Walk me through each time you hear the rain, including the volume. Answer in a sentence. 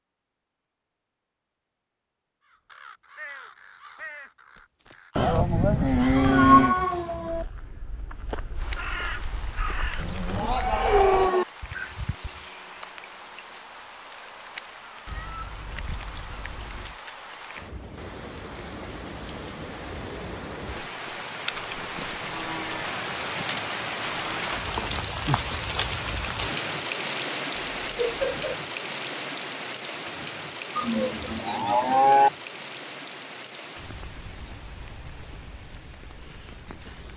The rain can be heard from 8.6 to 37.1 s, getting louder then quieter.